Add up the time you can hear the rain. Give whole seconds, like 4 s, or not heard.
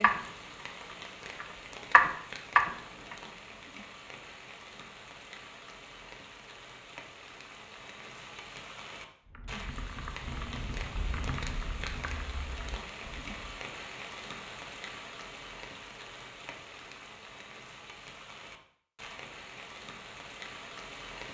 21 s.